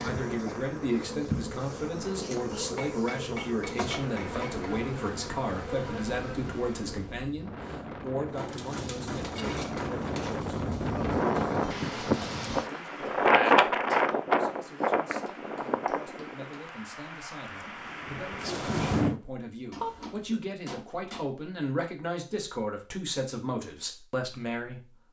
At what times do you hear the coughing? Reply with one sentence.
You can hear the coughing from 19.8 to 20.4 s.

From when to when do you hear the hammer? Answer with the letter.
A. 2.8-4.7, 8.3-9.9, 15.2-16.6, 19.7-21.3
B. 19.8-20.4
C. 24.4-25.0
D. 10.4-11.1
A.